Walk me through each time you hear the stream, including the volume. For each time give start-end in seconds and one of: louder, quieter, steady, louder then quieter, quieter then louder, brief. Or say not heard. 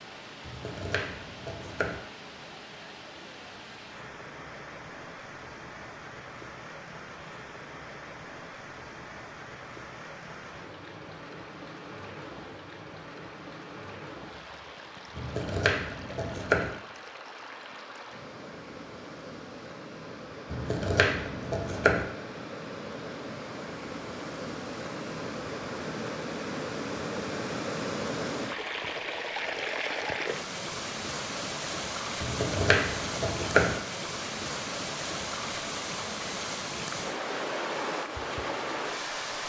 0.0-39.4 louder.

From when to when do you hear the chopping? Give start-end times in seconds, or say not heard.
0.5-2.0, 15.2-16.7, 20.5-22.1, 32.2-33.8.